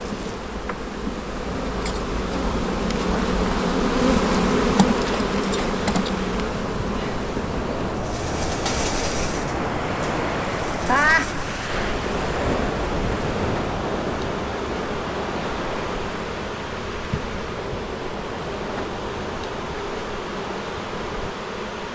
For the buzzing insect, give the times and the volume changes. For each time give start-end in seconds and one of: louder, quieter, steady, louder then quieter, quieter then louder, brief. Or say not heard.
0.0-21.8 quieter.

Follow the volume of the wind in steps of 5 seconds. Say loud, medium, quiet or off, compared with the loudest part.
medium, loud, loud, medium, medium.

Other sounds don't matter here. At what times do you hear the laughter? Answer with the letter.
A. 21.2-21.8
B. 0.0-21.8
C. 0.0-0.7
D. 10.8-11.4
D.